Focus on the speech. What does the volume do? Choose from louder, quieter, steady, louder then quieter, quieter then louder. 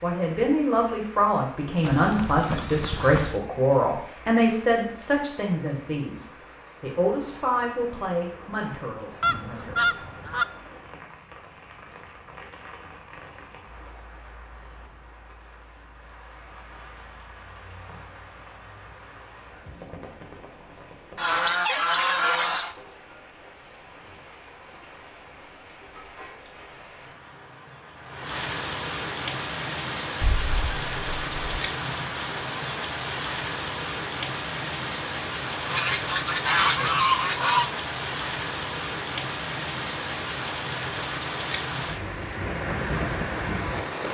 quieter.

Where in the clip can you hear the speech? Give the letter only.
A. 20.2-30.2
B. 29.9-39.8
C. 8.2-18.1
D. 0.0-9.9
D.